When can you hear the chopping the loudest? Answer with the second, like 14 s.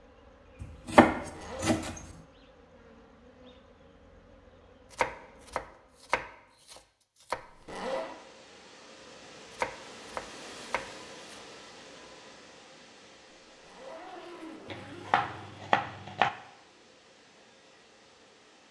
1 s.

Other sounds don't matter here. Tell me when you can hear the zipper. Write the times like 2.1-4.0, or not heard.
1.1-1.7, 7.3-8.1, 13.6-15.7.